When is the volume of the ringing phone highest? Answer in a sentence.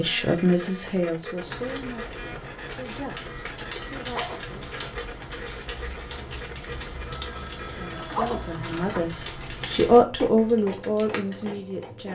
The loudest moment of the ringing phone is at 8 seconds.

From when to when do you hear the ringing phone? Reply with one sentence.
The ringing phone can be heard from 3.0 to 4.5 s and from 7.0 to 8.6 s.